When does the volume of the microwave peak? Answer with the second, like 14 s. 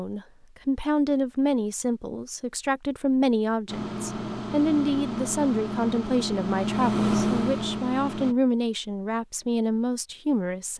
7 s.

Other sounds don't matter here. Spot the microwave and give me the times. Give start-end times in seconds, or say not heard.
3.6-8.3.